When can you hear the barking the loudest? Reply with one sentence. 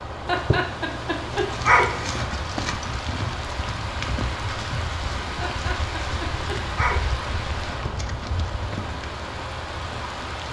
The loudest moment of the barking is at 2 seconds.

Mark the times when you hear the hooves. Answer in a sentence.
You can hear the hooves from 1.3 to 9.0 s.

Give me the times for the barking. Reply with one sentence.
The barking can be heard from 0.2 to 2.3 s and from 5.4 to 7.1 s.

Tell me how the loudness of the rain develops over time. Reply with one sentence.
The volume of the rain stays about the same.